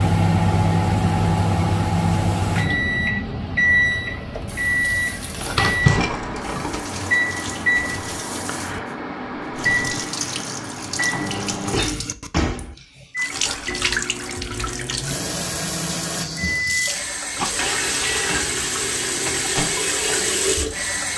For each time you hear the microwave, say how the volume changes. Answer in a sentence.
You can hear the microwave from 0.0 to 21.1 s, getting quieter.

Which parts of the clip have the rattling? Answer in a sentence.
The rattling can be heard from 5.3 to 6.9 s and from 13.3 to 14.1 s.